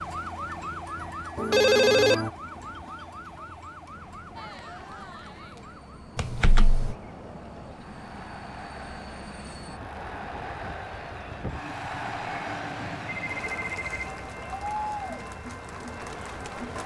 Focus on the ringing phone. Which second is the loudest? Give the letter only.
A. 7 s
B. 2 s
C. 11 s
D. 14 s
B.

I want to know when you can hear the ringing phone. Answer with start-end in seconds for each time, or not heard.
1.4-2.3, 6.2-7.0, 13.1-14.2.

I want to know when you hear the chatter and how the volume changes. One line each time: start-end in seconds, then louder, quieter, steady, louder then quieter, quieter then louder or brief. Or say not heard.
4.3-16.8 louder.